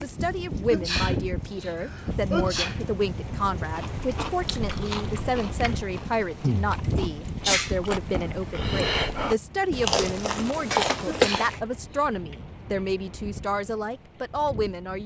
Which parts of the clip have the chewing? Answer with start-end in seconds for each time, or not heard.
3.7-11.6.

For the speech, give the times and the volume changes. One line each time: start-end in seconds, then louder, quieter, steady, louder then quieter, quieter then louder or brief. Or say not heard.
0.0-15.0 steady.